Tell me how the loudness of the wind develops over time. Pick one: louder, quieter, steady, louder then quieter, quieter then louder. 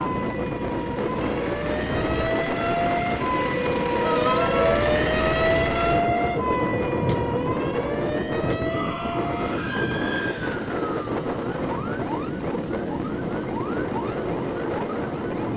steady.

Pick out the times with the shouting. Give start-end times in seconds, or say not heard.
4.0-4.9, 8.6-10.6.